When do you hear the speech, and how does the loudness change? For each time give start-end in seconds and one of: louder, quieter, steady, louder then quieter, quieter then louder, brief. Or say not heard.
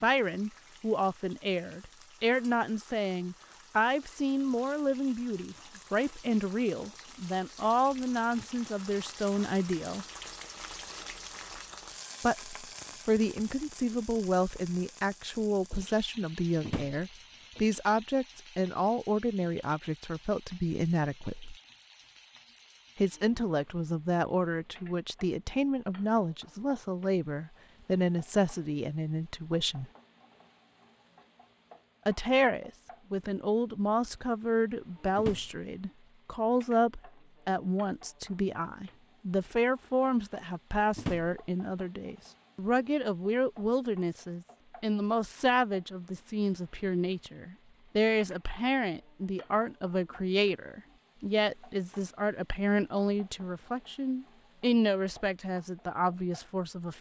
0.0-10.1 steady
12.2-21.6 steady
22.9-29.9 steady
32.0-56.9 steady.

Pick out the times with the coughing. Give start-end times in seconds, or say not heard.
not heard.